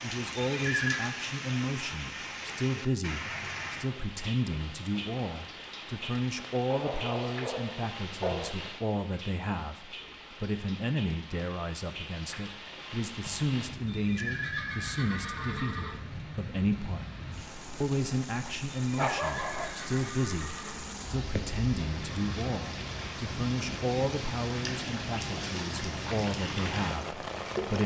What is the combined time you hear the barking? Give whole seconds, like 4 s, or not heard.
3 s.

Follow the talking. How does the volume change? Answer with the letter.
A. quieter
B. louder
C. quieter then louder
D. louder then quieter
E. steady
E.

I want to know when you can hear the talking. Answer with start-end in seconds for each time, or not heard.
0.0-17.1, 17.8-27.8.